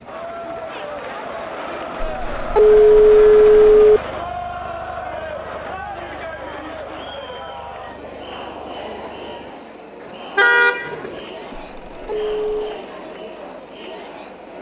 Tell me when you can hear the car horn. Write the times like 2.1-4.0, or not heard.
10.0-11.6.